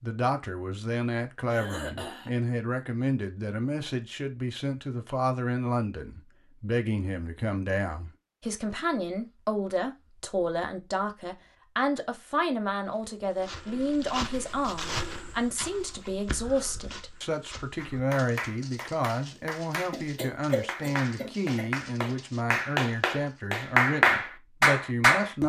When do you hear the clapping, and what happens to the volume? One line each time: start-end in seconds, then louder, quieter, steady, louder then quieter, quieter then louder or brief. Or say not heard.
17.8-25.4 louder.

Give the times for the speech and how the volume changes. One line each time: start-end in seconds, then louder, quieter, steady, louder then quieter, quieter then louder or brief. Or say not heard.
0.0-25.4 steady.